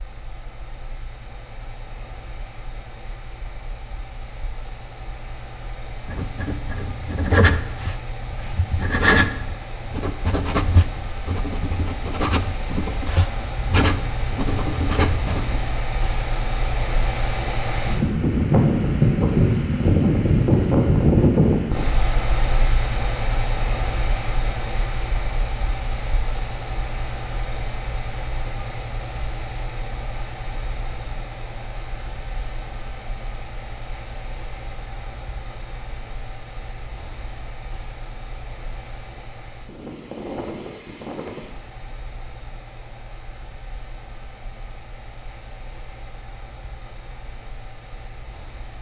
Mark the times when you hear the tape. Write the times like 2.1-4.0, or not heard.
not heard.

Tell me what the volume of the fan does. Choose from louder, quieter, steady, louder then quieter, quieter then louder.
louder then quieter.